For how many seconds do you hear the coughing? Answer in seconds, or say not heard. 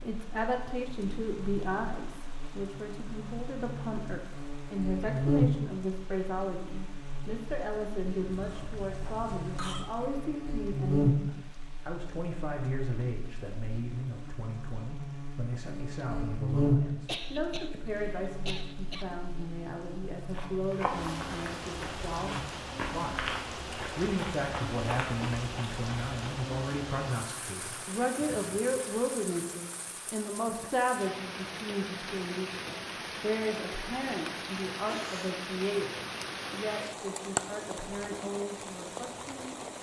4 s.